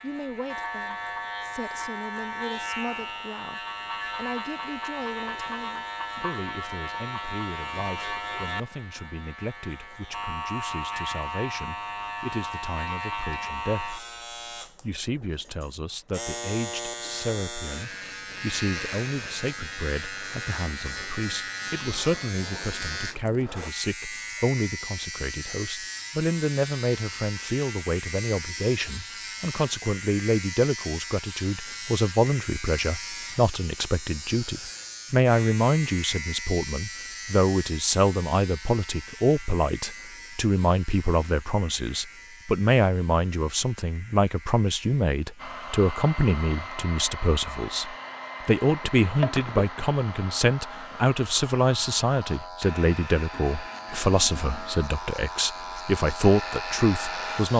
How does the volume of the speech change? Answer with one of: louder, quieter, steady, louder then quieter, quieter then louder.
louder.